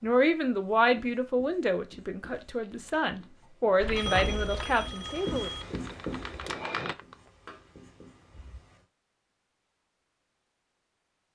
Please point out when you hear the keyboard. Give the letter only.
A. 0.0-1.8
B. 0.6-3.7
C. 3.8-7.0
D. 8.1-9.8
C.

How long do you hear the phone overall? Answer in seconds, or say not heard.
2 s.